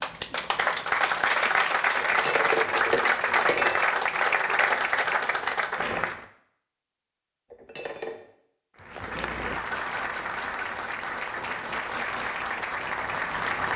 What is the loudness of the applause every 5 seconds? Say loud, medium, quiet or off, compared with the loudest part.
loud, medium, medium.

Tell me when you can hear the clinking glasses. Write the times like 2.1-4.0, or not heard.
2.0-3.9, 7.5-8.3.